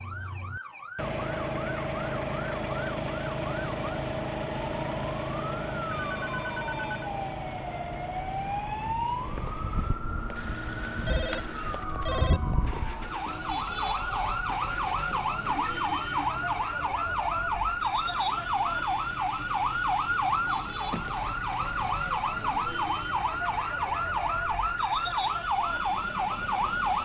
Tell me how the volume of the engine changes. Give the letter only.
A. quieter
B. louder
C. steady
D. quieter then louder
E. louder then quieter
A.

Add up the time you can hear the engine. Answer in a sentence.
The engine can be heard for 27 seconds in total.